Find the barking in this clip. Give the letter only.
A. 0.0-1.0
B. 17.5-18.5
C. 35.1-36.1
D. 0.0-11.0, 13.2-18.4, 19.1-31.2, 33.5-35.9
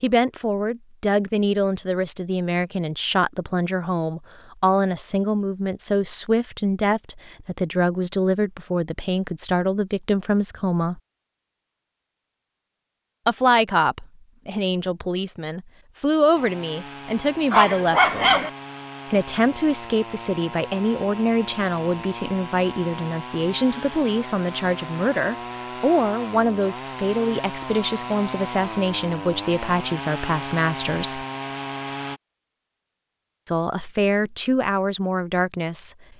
B.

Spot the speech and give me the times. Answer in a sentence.
You can hear the speech from 0.0 to 11.0 s, from 13.2 to 18.4 s, from 19.1 to 31.2 s and from 33.5 to 35.9 s.